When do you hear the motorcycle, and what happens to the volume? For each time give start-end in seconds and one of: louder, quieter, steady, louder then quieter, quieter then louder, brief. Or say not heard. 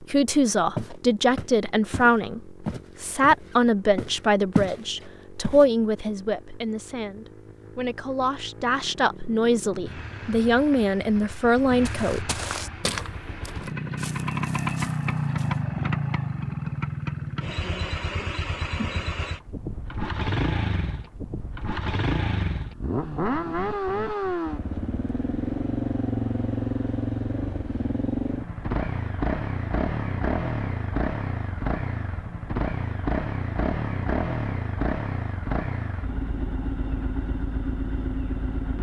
0.0-38.7 louder.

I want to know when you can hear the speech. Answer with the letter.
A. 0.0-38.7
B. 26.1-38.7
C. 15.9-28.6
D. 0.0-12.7
D.